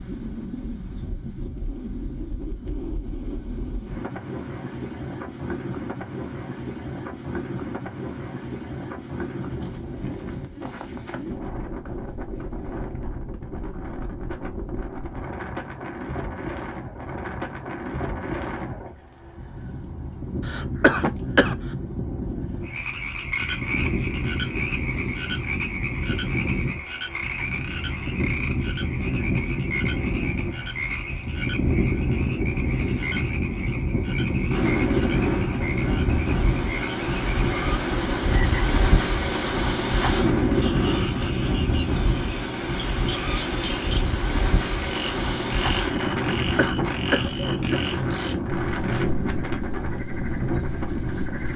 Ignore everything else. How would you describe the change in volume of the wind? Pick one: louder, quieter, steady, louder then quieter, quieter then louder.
louder.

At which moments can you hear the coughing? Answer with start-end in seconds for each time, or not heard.
20.4-21.6, 46.1-47.9.